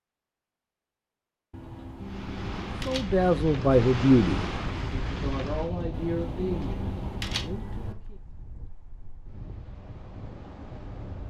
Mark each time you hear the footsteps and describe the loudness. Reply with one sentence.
You can't hear the footsteps here.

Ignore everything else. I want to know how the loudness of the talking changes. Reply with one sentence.
The loudness of the talking goes down.